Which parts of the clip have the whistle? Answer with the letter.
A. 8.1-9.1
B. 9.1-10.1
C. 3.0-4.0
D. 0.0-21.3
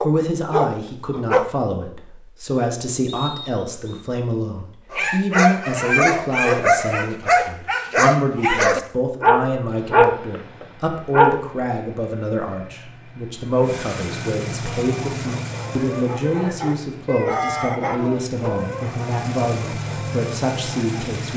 C.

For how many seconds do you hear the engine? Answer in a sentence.
The engine can be heard for 11 seconds in total.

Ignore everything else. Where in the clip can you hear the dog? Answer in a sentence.
You can hear the dog from 0.0 to 1.5 s, from 4.9 to 11.4 s and from 14.6 to 21.1 s.